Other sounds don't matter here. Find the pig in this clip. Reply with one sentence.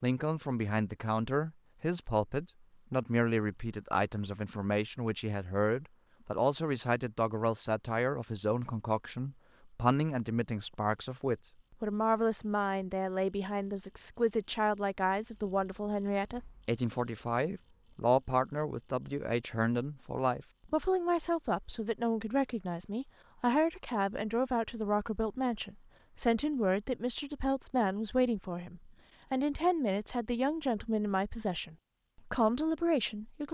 You can't hear the pig here.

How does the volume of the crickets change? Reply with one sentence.
The volume of the crickets goes up, then down.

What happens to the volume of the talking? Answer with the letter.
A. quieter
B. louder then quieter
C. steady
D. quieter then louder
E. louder
C.